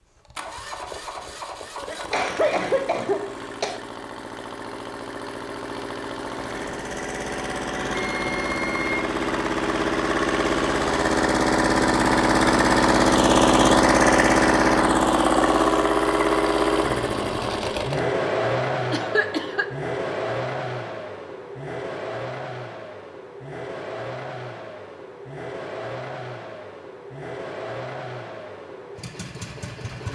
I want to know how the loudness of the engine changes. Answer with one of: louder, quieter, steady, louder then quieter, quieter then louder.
louder then quieter.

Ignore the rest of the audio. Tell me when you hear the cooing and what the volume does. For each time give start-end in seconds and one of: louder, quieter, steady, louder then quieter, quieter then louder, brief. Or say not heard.
not heard.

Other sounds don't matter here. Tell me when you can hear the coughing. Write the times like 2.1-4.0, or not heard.
1.9-3.8, 18.9-19.6.